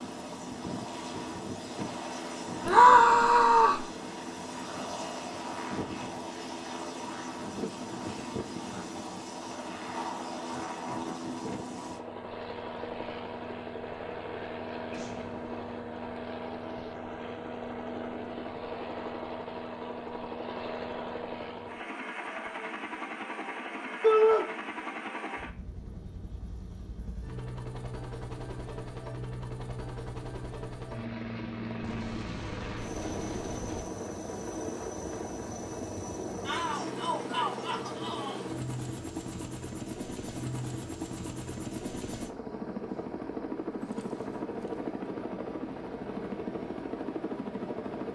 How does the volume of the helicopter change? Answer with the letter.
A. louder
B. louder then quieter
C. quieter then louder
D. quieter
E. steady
E.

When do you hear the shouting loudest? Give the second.
3 s.